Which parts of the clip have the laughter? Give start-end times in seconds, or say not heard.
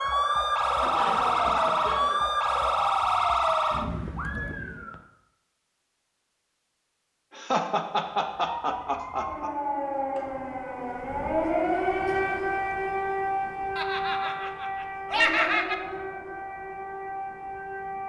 0.8-2.2, 7.3-9.5, 13.8-15.8.